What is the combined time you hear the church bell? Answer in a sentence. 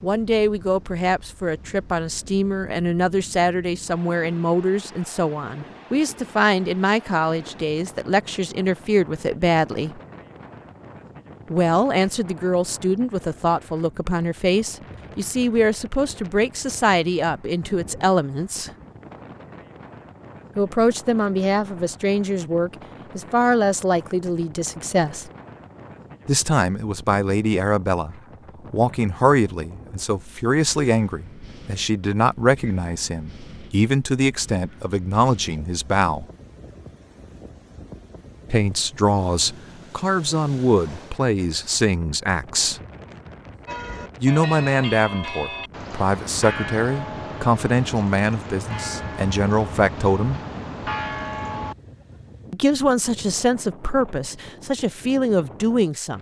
The church bell can be heard for 8 seconds in total.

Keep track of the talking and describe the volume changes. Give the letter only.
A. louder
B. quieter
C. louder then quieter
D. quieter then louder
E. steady
E.